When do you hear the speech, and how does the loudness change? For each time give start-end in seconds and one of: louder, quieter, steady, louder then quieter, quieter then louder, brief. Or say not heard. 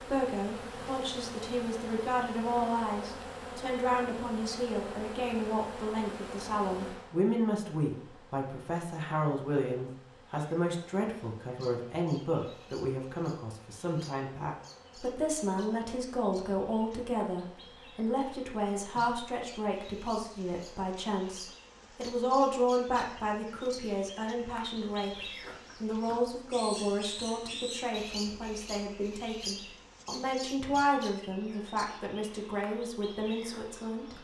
0.0-34.1 steady.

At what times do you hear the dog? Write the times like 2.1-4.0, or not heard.
not heard.